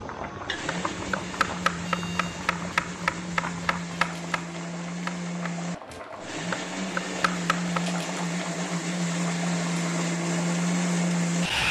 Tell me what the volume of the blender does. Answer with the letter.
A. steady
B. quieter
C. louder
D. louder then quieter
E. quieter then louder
C.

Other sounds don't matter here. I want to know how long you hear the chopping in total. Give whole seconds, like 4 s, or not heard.
7 s.